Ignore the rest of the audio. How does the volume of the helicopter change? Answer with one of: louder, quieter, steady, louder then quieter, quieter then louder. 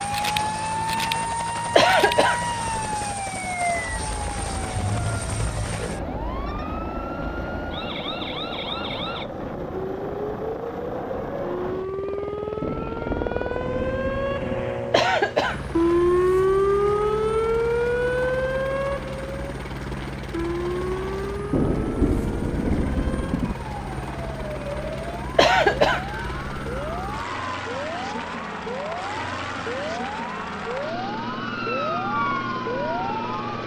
steady.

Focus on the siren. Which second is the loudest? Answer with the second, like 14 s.
16 s.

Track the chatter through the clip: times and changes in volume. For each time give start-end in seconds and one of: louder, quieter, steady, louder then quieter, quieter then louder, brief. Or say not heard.
not heard.